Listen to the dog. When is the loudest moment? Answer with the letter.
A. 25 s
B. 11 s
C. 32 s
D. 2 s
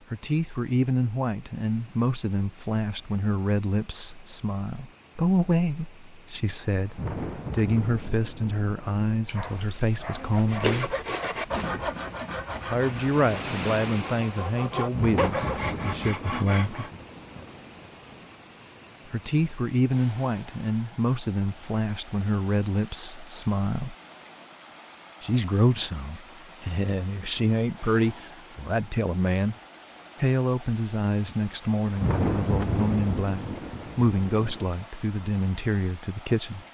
B.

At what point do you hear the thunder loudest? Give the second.
32 s.